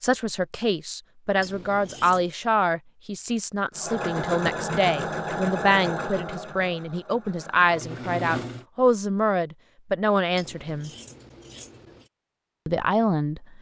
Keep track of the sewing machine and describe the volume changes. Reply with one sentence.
The volume of the sewing machine goes down, then up.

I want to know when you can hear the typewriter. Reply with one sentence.
The typewriter can't be heard in this clip.